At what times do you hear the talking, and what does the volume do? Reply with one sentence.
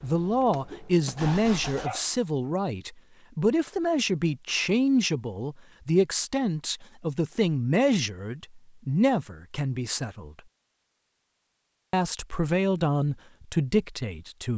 The talking can be heard from 0.0 to 10.3 s, at a steady volume; and briefly from 11.9 to 14.5 s.